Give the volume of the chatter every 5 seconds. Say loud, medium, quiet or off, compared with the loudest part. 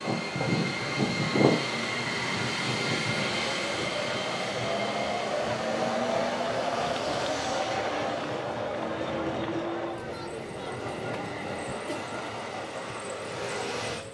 loud, loud, medium.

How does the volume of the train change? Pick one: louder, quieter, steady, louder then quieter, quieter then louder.
quieter.